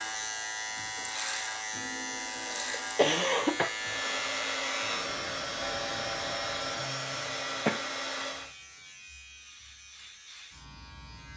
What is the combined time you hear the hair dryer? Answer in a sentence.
The hair dryer can be heard for 5 seconds in total.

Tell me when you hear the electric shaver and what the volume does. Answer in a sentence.
The electric shaver can be heard from 0.0 to 11.3 s, getting quieter.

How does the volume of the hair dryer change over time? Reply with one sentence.
The volume of the hair dryer stays about the same.